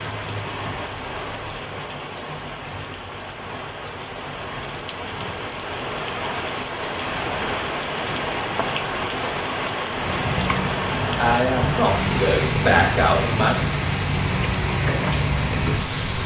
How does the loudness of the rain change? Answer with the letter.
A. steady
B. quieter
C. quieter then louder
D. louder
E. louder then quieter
D.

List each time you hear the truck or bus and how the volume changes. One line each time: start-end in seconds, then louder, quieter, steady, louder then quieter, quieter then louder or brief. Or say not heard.
9.9-16.2 steady.